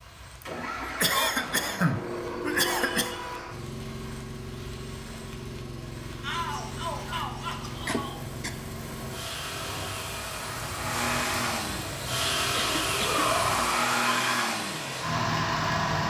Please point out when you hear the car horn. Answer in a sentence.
You can't hear the car horn here.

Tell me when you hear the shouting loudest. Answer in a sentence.
The loudest moment of the shouting is at 13 seconds.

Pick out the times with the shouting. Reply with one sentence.
The shouting can be heard from 2.6 to 3.5 s, from 6.2 to 8.2 s and from 12.9 to 14.5 s.